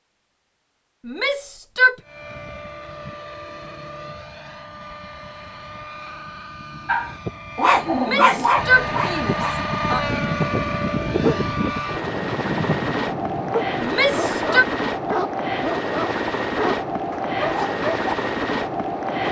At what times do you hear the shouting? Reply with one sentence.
The shouting can be heard from 1.1 to 1.9 s, from 8.0 to 10.0 s and from 13.8 to 14.7 s.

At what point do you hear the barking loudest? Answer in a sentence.
The loudest moment of the barking is at 8 seconds.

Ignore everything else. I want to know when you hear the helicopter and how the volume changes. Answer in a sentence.
You can hear the helicopter from 2.0 to 19.2 s, getting louder.